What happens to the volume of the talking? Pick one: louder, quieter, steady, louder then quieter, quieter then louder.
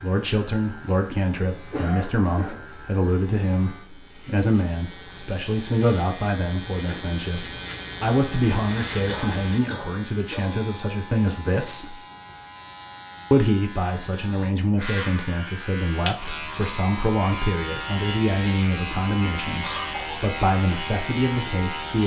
steady.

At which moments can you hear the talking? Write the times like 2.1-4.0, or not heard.
0.0-11.9, 13.3-22.0.